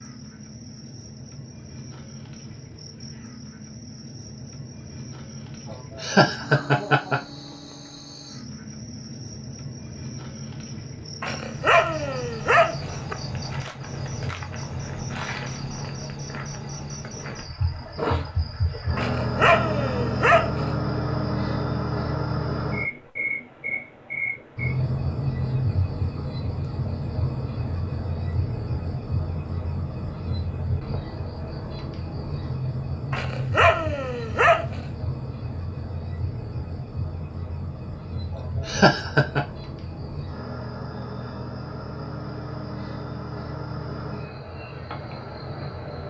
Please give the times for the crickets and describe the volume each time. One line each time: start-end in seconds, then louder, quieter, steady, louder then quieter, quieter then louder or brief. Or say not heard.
0.0-46.0 louder then quieter.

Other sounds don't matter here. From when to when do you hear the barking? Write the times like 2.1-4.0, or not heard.
11.2-13.2, 18.9-20.6, 33.1-34.8.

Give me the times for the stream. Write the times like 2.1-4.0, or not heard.
not heard.